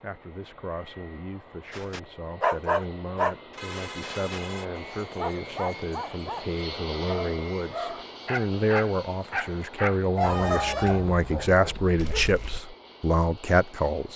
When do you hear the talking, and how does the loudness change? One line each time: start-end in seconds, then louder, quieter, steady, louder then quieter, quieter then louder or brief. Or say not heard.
0.0-14.1 louder.